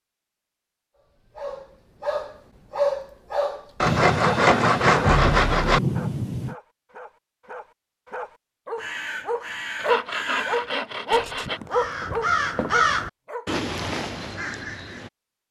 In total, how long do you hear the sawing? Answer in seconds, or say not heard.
4 s.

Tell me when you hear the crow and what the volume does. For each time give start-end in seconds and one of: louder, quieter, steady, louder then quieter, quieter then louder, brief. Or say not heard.
8.8-15.1 louder then quieter.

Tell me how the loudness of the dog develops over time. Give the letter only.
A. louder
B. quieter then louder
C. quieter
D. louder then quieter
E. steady
B.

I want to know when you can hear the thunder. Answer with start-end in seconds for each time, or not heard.
3.9-6.5.